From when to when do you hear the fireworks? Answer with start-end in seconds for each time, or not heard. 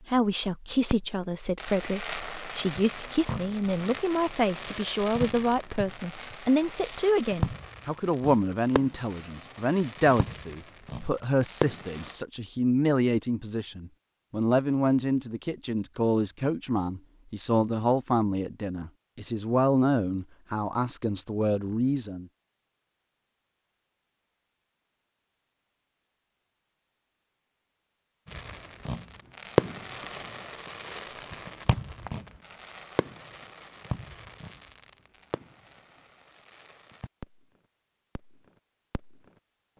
0.9-12.2, 28.2-37.5, 38.1-39.2.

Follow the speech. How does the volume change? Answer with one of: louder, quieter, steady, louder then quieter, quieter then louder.
steady.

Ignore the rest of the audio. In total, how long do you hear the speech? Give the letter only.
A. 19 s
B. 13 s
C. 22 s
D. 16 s
C.